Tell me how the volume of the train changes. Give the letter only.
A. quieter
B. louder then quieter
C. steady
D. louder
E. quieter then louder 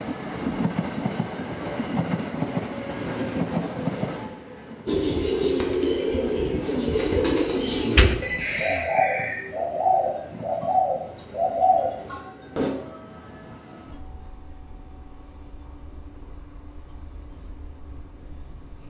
A.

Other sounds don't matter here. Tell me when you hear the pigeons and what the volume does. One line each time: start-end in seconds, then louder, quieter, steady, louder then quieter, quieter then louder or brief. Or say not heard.
4.8-12.7 steady.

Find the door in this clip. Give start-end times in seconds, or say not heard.
7.8-8.8.